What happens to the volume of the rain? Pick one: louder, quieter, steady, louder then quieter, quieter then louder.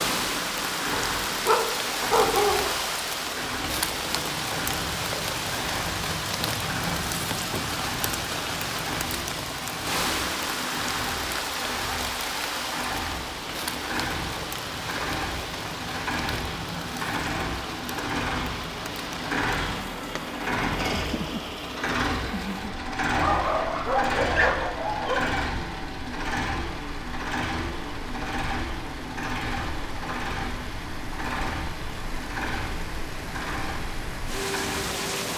quieter.